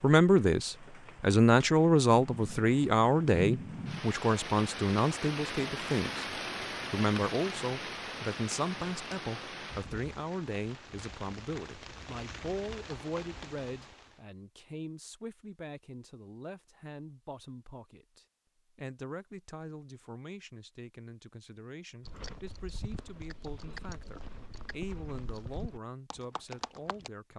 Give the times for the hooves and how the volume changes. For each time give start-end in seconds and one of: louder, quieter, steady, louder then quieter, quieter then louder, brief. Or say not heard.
22.1-27.1 louder.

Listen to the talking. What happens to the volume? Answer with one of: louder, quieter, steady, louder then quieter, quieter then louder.
quieter.